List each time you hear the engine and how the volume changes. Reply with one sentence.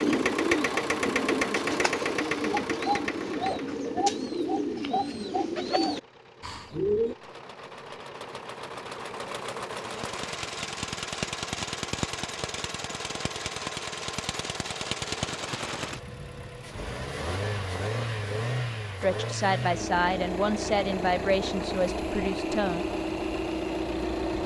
You can hear the engine from 0.0 to 24.4 s, getting quieter then louder.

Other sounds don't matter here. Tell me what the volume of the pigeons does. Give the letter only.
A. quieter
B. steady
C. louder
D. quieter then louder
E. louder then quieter
B.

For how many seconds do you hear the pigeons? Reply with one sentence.
You can hear the pigeons for 7 seconds altogether.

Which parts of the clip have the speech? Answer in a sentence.
You can hear the speech from 19.0 to 22.9 s.